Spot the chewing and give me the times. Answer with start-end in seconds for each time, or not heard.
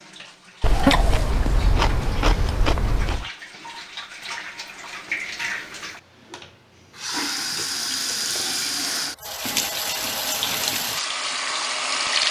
0.6-3.2.